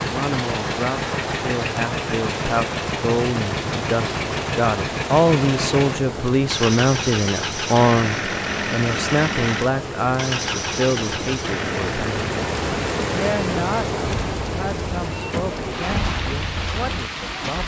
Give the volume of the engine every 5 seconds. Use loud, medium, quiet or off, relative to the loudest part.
loud, loud, loud, medium.